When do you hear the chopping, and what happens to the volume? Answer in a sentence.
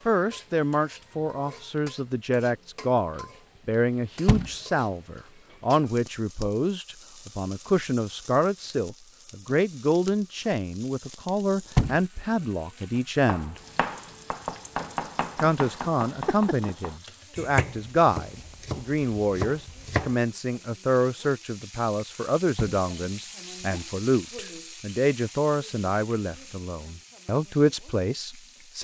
The chopping can be heard from 12.9 to 20.1 s, at a steady volume.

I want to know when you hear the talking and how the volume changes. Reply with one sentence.
The talking can be heard from 0.1 to 13.6 s, at a steady volume; and from 15.4 to 28.7 s, at a steady volume.